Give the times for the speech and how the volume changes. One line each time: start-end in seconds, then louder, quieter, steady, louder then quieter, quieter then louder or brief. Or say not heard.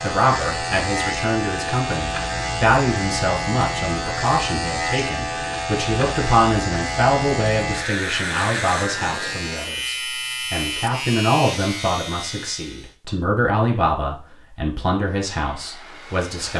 0.0-16.5 steady.